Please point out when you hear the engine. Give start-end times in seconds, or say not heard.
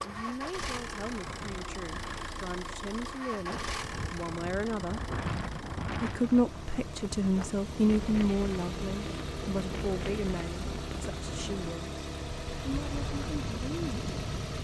0.0-14.5.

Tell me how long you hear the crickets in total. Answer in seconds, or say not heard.
not heard.